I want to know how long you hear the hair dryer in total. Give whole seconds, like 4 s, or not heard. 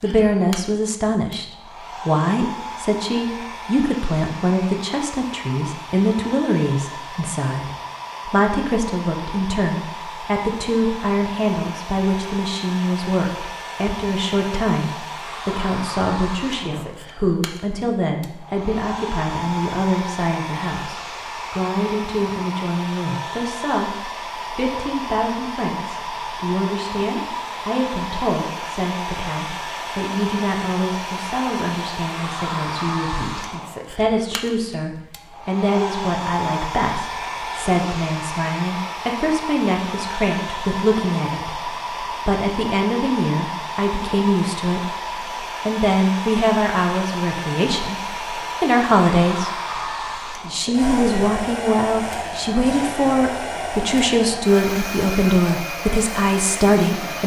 57 s.